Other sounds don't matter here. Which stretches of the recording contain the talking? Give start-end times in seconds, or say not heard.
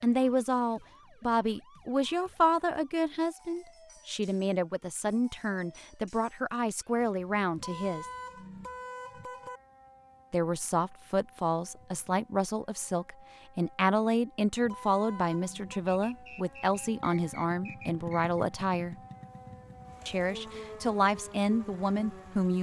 0.0-8.1, 10.3-18.9, 20.1-22.5.